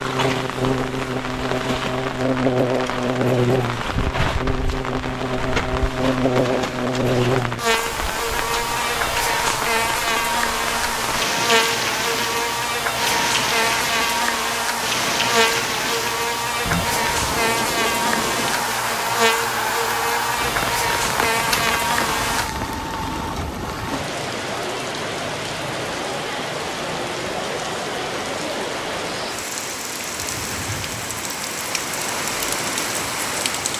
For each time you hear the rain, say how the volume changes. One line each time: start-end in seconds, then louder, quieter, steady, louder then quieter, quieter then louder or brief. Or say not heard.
0.0-33.7 steady.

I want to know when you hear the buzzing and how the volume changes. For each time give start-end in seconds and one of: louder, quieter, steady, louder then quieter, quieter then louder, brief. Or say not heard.
0.0-22.5 steady.